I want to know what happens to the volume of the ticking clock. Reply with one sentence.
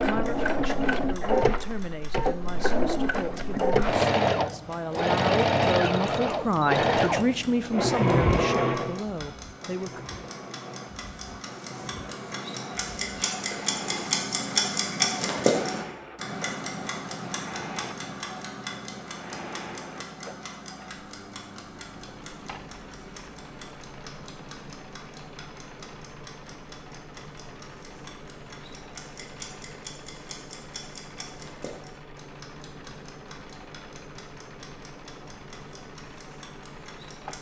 The volume of the ticking clock goes up, then down.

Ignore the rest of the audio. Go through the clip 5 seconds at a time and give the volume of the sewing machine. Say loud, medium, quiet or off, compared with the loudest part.
loud, loud, quiet, quiet, quiet, quiet, quiet, quiet.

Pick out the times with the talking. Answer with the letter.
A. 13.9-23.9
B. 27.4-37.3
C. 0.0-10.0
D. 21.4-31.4
C.